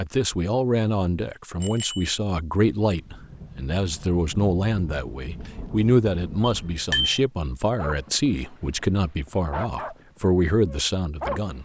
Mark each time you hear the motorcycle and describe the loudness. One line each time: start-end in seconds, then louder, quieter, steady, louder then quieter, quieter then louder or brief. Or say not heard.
not heard.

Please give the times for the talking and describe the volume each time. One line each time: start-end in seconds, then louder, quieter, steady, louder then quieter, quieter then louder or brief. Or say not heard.
0.0-11.6 steady.